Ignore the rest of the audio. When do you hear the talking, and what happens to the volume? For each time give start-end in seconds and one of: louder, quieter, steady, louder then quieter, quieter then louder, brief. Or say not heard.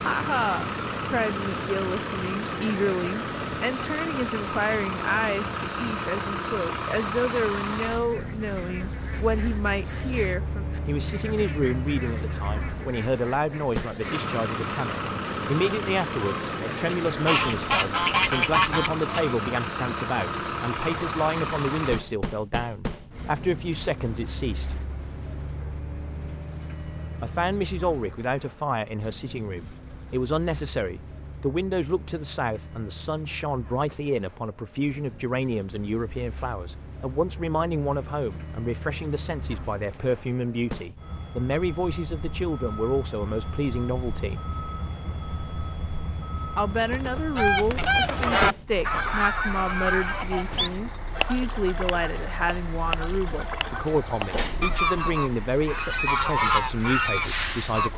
0.0-24.8 steady
27.2-44.4 steady
46.5-57.9 steady.